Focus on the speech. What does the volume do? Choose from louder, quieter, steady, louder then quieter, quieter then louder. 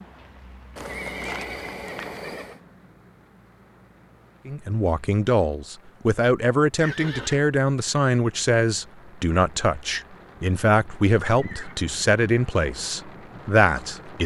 steady.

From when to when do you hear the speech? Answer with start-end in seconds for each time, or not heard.
4.5-14.2.